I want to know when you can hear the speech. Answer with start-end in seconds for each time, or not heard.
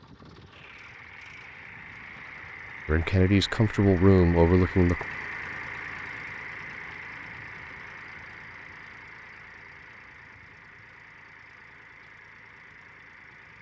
2.9-5.0.